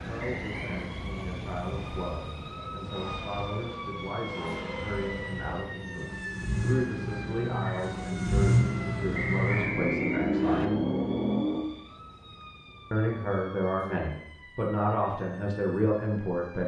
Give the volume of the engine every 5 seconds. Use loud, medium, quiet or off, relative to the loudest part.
quiet, loud, loud, off.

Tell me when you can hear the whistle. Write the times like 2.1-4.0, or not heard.
0.3-0.8, 9.1-10.7.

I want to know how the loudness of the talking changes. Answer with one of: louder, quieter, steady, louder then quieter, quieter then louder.
louder.